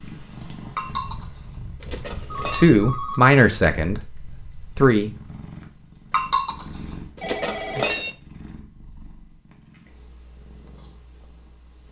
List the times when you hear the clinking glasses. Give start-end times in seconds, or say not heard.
0.8-2.8, 6.1-8.1.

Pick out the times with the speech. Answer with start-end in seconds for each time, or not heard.
2.4-5.1.